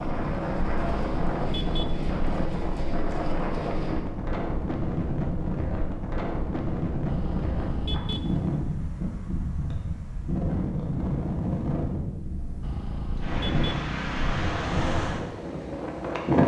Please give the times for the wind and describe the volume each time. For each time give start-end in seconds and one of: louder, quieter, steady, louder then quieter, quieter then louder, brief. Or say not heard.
0.0-16.4 steady.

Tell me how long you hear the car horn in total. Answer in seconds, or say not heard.
5 s.